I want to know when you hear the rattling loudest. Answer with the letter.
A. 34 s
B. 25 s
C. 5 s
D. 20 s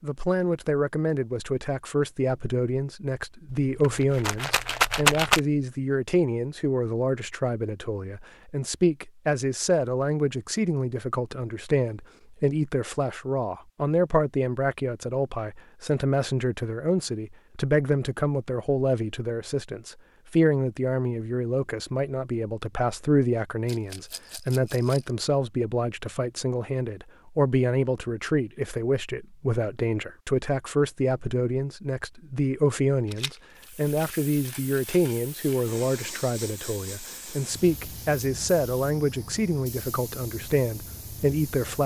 C.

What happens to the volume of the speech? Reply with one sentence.
The volume of the speech stays about the same.